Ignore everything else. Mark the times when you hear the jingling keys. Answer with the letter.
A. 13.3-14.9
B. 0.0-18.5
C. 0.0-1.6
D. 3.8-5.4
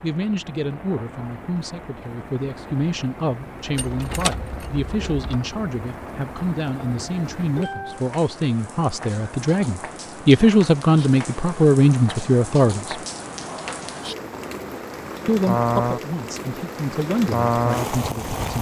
D.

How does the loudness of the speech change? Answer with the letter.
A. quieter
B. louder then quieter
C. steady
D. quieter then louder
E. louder
B.